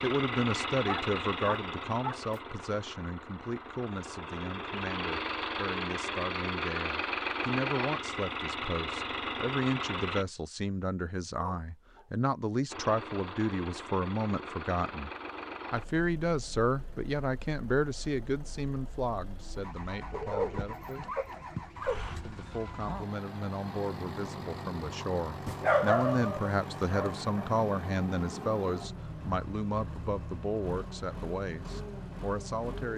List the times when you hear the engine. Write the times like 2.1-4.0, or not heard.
0.0-10.2, 12.7-32.9.